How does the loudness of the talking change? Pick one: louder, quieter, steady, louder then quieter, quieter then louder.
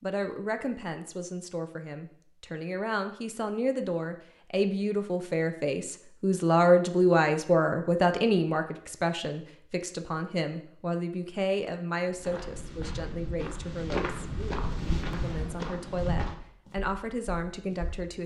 louder then quieter.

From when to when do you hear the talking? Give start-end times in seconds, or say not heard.
0.0-14.1, 15.1-18.2.